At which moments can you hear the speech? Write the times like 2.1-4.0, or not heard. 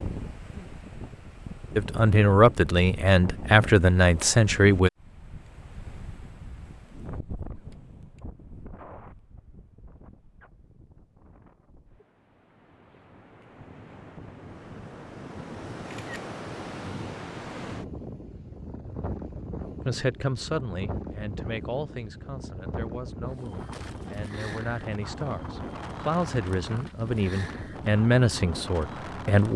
1.8-4.9, 19.9-29.5.